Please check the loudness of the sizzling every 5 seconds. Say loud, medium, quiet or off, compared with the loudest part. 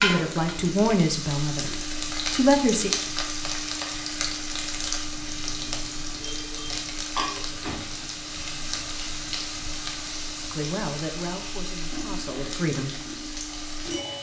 loud, loud, medium.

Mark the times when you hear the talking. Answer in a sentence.
The talking can be heard from 0.0 to 2.9 s and from 10.5 to 12.9 s.